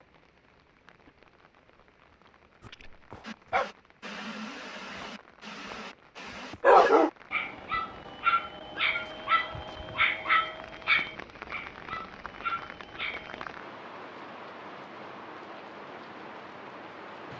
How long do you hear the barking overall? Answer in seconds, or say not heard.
10 s.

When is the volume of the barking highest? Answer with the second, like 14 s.
7 s.